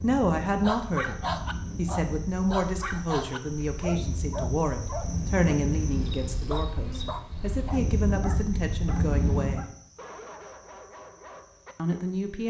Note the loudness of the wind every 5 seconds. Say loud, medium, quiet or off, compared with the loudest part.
medium, loud, off.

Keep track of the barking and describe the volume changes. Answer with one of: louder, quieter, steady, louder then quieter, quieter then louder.
quieter.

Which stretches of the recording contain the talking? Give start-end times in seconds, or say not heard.
0.0-1.1, 1.8-9.7, 11.8-12.4.